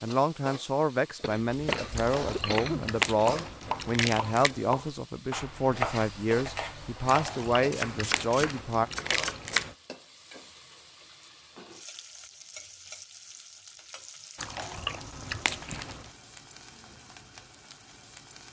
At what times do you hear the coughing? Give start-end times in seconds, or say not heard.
1.2-2.8.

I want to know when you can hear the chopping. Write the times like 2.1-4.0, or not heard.
1.6-9.7.